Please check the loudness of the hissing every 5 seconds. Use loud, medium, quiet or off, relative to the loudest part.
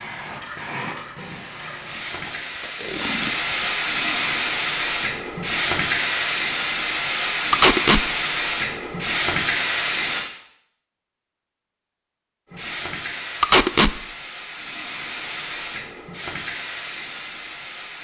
loud, loud, medium, medium.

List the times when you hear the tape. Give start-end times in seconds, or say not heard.
2.1-3.4, 7.5-8.1, 13.4-13.9.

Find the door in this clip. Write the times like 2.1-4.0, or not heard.
not heard.